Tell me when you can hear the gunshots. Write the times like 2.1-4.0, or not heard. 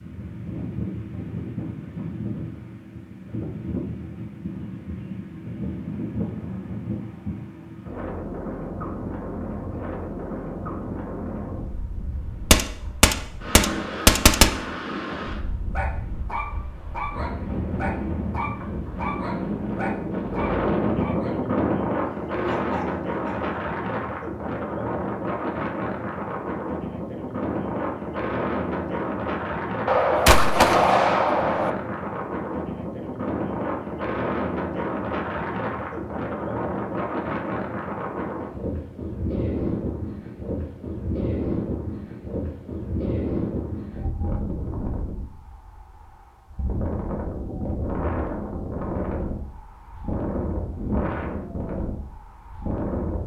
12.5-14.5, 29.9-31.7.